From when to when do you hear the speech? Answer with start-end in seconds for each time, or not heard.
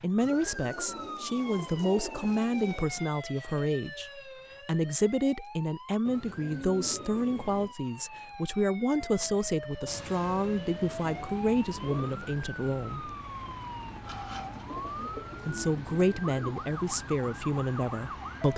0.0-13.5, 14.9-18.5.